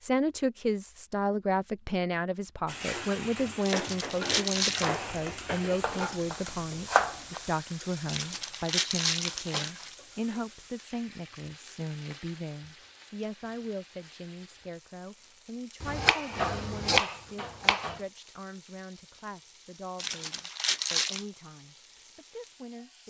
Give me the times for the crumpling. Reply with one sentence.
You can hear the crumpling from 3.6 to 5.0 s, from 8.1 to 9.9 s and from 19.9 to 21.2 s.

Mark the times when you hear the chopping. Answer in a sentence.
The chopping can be heard from 4.8 to 7.4 s and from 15.8 to 18.0 s.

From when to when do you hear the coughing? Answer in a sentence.
The coughing can't be heard in this clip.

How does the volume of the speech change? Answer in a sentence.
The volume of the speech goes down.